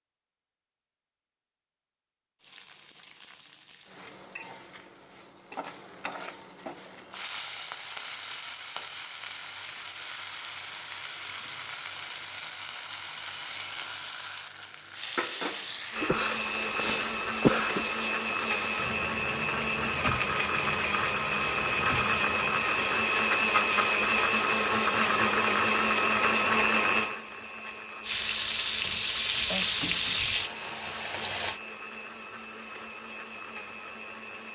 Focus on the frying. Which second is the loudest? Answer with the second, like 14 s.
30 s.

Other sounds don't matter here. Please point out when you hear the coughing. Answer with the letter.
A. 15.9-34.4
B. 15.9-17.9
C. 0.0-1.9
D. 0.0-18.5
B.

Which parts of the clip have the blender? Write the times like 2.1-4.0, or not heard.
15.9-34.4.